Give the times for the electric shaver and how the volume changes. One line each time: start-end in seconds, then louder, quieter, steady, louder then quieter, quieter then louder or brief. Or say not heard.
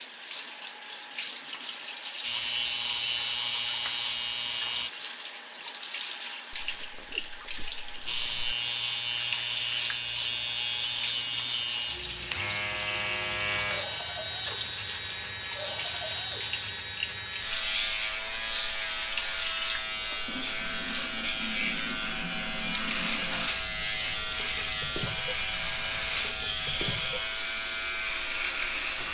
2.2-4.9 brief
8.1-29.0 steady.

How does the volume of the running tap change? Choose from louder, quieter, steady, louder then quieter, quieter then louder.
steady.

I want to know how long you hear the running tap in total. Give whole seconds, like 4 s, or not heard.
29 s.